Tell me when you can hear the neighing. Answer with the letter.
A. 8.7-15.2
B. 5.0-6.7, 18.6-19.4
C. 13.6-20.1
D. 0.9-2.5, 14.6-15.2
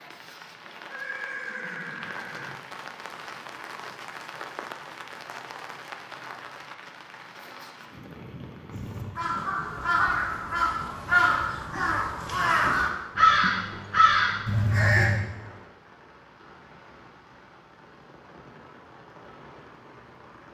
D.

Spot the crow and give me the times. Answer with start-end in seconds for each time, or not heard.
8.7-15.2.